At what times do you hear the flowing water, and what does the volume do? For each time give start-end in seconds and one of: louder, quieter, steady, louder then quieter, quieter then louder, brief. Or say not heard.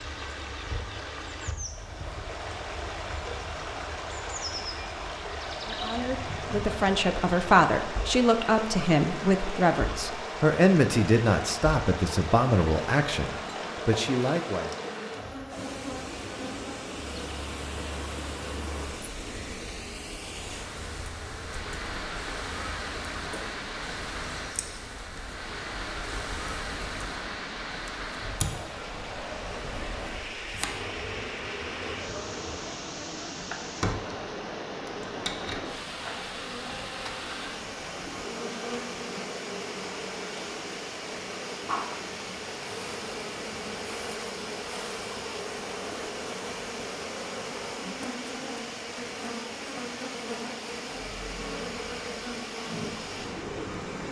0.0-54.0 steady.